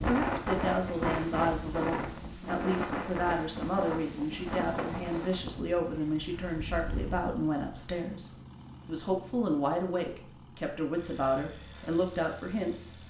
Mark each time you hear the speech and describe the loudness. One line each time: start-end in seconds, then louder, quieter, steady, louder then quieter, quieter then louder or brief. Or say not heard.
0.0-13.0 steady.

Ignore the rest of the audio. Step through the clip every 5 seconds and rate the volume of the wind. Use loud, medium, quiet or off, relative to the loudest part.
loud, medium, off.